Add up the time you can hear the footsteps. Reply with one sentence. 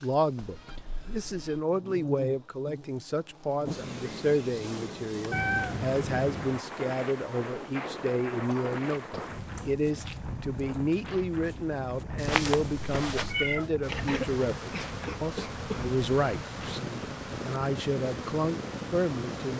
The footsteps can be heard for 5 seconds in total.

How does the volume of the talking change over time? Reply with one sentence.
The loudness of the talking stays about the same.